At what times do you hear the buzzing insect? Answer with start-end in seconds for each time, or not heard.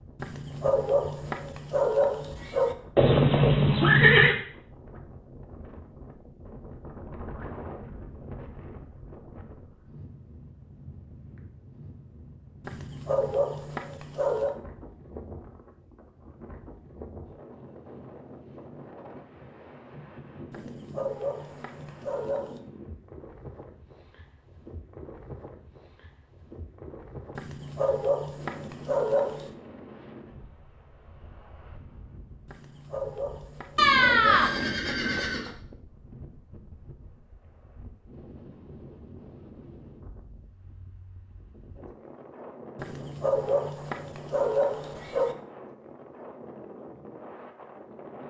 not heard.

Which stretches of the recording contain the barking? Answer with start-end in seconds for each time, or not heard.
0.1-2.8, 12.6-14.6, 20.5-22.6, 27.4-29.5, 32.5-34.5, 42.8-45.4.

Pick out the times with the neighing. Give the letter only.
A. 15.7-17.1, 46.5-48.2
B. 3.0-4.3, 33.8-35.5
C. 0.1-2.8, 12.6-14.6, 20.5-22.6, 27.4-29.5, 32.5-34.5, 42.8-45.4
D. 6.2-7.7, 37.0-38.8
B.